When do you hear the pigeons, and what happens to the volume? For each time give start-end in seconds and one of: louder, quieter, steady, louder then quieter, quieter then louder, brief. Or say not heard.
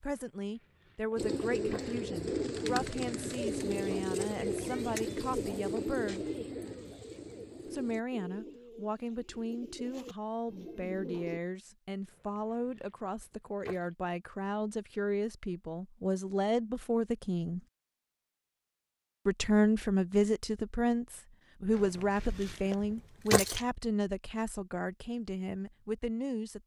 1.1-11.4 quieter.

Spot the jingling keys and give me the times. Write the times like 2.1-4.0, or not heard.
0.1-1.9, 12.1-13.9, 21.8-23.6.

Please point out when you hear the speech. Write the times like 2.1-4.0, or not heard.
0.0-6.2, 7.7-17.6, 19.2-26.6.